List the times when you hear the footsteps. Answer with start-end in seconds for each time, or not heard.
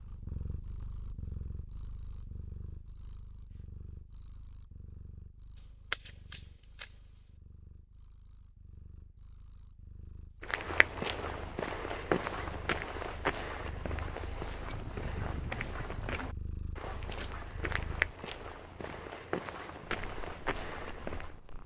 10.4-21.4.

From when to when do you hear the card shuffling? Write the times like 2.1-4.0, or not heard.
5.5-7.3.